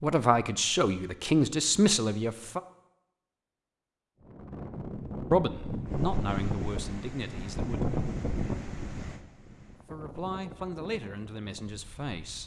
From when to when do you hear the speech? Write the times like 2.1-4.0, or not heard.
0.0-2.6, 5.3-7.8, 9.9-12.4.